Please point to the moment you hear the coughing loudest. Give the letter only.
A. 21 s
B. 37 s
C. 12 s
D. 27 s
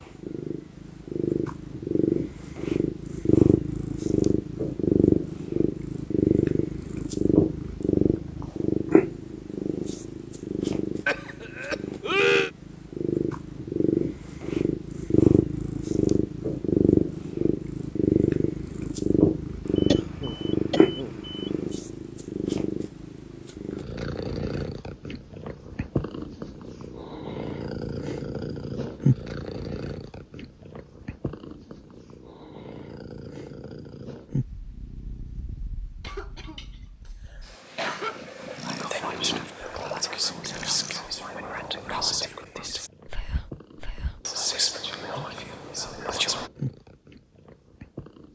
C.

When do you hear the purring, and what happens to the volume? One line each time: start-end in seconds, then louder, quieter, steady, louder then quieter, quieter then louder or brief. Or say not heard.
0.0-48.3 quieter.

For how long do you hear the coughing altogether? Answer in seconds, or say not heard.
5 s.